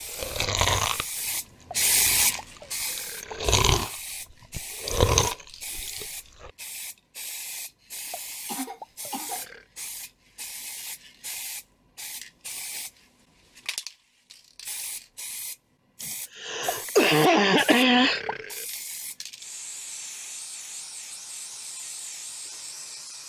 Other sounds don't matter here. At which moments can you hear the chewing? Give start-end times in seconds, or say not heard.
0.1-6.5.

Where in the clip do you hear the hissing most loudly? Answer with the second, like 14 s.
2 s.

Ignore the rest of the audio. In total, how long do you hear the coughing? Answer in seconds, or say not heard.
3 s.